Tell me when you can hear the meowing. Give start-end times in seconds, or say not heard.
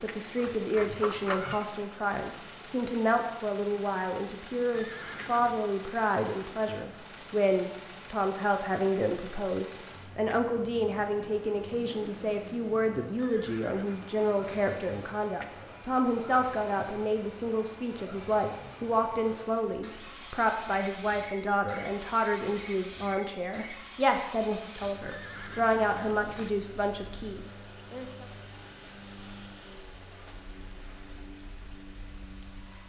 0.3-1.7.